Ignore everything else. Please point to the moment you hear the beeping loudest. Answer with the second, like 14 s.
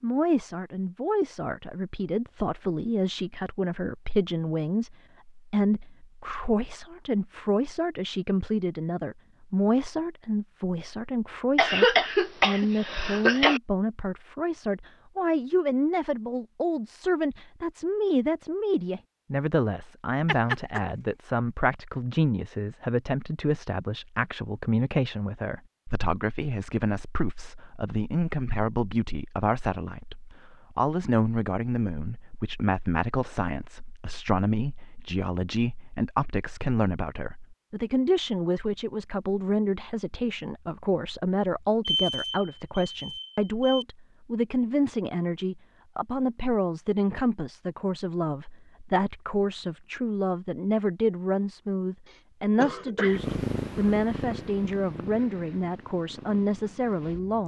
42 s.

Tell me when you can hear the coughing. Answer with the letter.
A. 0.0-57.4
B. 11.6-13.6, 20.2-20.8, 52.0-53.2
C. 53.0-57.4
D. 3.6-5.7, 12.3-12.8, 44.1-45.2
B.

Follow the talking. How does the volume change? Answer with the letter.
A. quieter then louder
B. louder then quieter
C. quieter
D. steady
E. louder
D.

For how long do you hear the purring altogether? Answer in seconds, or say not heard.
4 s.